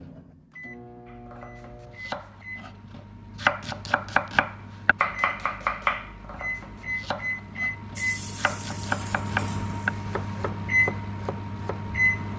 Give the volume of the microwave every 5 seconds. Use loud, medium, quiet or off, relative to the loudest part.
quiet, medium, loud.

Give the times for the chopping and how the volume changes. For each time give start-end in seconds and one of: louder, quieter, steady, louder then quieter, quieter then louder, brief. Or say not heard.
1.1-11.8 louder then quieter.